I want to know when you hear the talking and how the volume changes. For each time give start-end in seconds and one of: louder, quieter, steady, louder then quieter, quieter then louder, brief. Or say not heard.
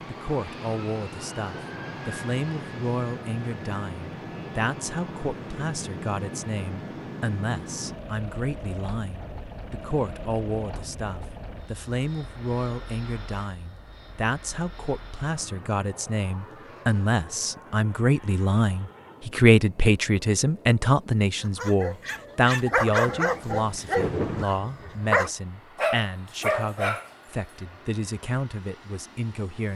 0.1-29.7 louder then quieter.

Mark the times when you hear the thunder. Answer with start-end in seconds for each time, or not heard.
23.1-24.4.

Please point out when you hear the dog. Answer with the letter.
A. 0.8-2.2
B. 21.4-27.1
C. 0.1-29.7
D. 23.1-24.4
B.